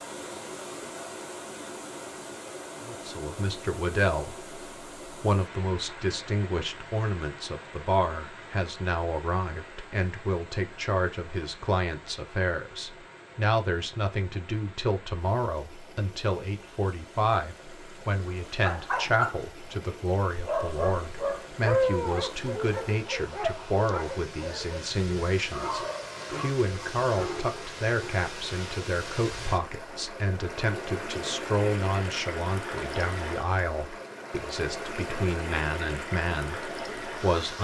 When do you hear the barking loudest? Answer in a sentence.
The volume of the barking peaks at 22 seconds.